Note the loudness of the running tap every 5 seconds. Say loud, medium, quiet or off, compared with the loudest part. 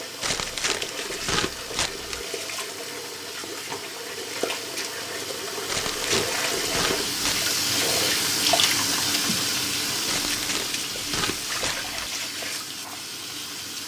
medium, loud, medium.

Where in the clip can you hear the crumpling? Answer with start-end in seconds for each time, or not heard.
0.2-2.2, 5.7-7.5, 10.1-12.1.